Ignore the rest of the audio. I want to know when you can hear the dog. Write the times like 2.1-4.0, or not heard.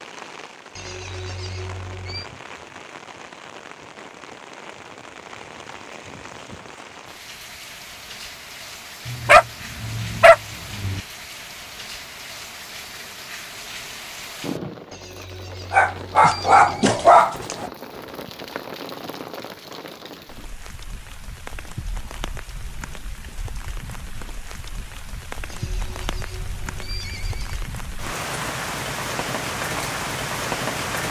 9.1-11.0, 15.7-17.7.